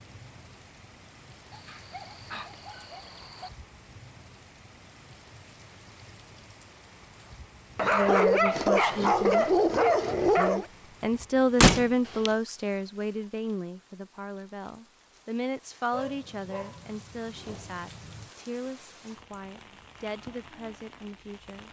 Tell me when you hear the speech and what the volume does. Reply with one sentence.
You can hear the speech briefly from 7.9 to 9.4 s; and from 10.3 to 21.6 s, getting quieter.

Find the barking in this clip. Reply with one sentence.
You can hear the barking from 1.5 to 3.5 s, from 7.8 to 10.7 s and from 15.9 to 18.3 s.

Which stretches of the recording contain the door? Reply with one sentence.
You can hear the door from 11.6 to 12.3 s.